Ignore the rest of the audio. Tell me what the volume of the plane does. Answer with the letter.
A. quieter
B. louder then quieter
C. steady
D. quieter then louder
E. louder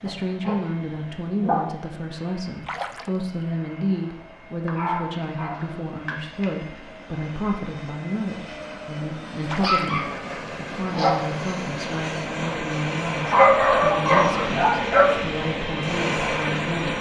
E.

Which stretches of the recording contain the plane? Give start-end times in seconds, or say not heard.
0.0-16.9.